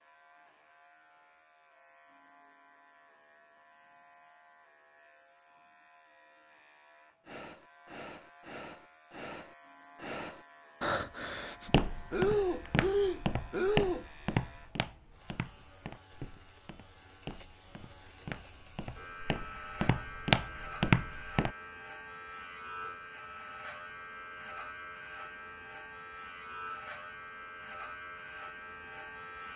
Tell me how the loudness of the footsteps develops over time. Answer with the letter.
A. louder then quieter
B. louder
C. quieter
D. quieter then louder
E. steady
D.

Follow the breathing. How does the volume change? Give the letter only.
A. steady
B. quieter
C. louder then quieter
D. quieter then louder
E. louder
E.